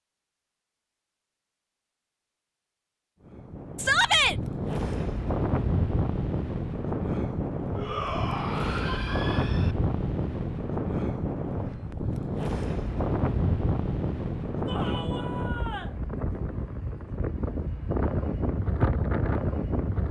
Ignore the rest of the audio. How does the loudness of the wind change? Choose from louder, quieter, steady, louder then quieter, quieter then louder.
steady.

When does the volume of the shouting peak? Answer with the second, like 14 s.
4 s.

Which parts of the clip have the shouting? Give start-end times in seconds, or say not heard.
3.8-4.3, 7.8-9.8, 14.7-15.9.